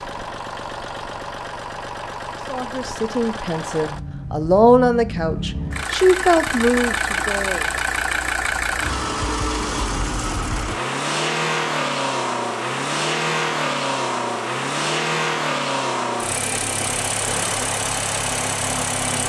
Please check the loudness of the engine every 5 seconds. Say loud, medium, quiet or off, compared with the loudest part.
medium, loud, loud, loud.